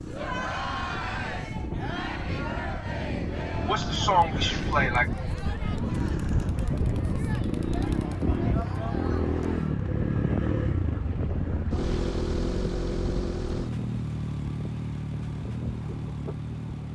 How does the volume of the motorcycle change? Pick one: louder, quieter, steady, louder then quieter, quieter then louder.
louder.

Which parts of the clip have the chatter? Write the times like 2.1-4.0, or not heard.
0.1-9.8.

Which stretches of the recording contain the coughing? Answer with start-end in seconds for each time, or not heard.
3.6-5.1.